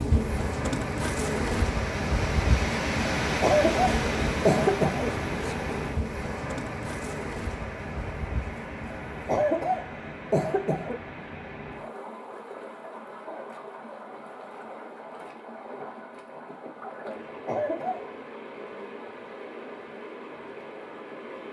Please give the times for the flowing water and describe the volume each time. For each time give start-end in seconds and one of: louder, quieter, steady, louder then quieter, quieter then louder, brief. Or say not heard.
0.0-21.4 quieter.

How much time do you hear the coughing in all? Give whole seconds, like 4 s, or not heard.
4 s.